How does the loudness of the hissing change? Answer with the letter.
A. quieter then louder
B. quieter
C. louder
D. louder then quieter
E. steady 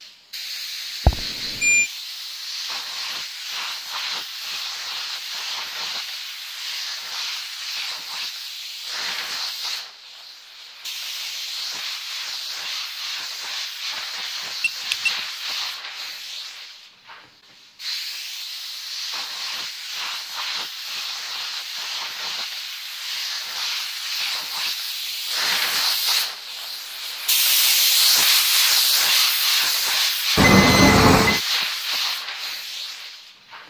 C.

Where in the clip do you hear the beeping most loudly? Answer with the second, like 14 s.
31 s.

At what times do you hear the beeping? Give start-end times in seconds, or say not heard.
1.1-1.9, 14.6-15.1, 30.4-31.4.